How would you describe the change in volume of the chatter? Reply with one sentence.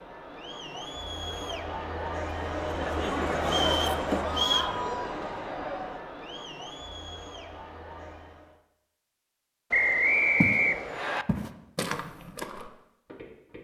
The volume of the chatter goes up, then down.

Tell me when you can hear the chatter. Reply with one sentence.
You can hear the chatter from 0.0 to 8.6 s.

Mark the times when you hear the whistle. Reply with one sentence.
You can hear the whistle from 3.5 to 4.8 s and from 9.7 to 11.2 s.